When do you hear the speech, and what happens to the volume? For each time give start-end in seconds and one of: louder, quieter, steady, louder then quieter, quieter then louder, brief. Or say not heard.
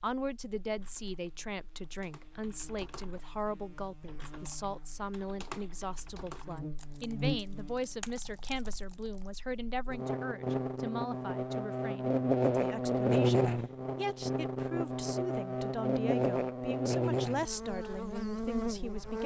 0.0-19.2 steady.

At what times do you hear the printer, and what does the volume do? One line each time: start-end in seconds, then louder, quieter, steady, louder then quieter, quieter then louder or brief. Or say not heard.
not heard.